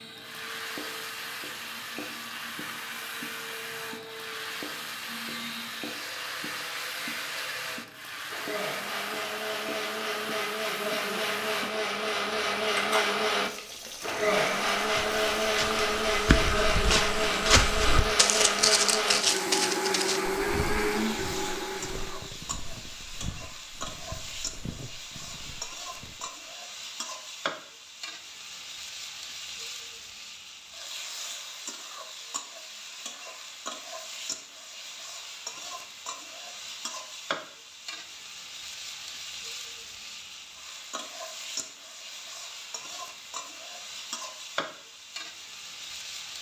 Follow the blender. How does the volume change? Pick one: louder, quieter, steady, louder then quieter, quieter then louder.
louder.